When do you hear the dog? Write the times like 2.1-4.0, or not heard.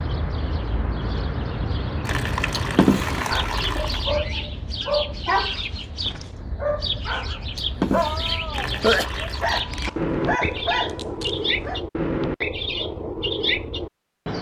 3.2-11.8.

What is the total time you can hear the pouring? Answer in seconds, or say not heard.
3 s.